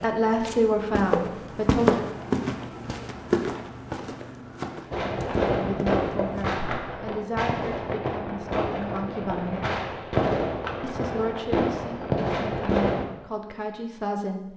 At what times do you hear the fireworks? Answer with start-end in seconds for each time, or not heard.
4.9-13.1.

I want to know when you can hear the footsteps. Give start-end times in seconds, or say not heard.
0.0-6.6.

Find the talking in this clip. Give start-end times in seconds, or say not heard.
0.0-2.0, 5.5-9.6, 10.8-14.5.